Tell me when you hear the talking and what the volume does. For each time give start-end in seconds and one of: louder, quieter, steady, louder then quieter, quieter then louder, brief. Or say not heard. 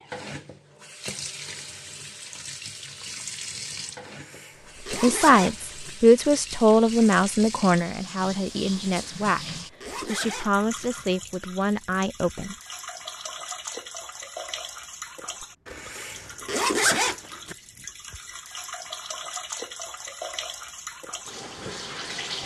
4.9-12.6 quieter.